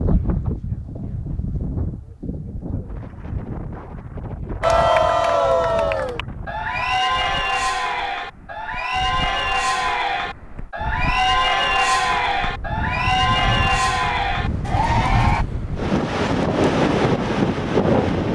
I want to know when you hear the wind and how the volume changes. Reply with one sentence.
You can hear the wind from 0.0 to 18.2 s, getting quieter then louder.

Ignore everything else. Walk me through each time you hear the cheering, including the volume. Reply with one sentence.
The cheering can be heard from 4.6 to 15.4 s, at a steady volume.